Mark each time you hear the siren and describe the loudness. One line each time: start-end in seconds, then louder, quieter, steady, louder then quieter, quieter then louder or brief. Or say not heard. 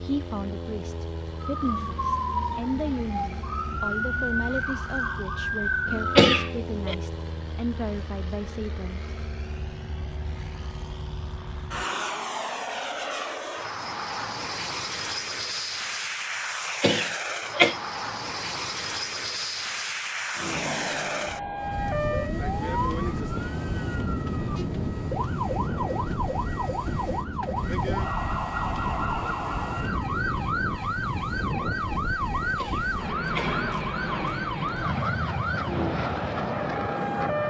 1.4-6.5 quieter then louder
20.4-37.4 steady.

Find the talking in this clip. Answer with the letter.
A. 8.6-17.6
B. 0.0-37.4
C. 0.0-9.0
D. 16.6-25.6
C.